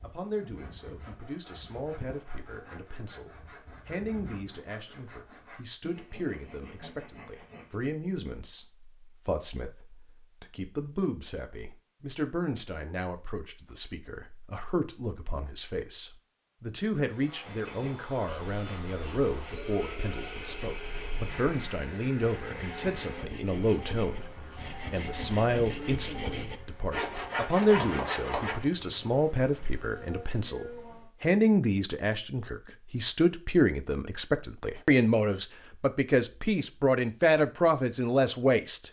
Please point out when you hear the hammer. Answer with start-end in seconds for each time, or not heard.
not heard.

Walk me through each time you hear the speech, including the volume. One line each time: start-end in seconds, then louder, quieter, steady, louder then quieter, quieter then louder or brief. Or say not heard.
0.0-38.8 louder.